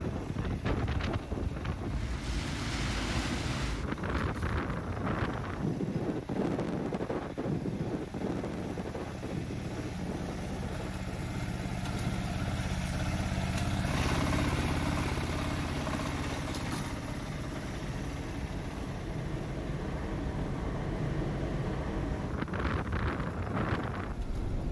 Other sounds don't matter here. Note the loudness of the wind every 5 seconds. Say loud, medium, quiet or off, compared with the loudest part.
loud, loud, medium, medium, loud.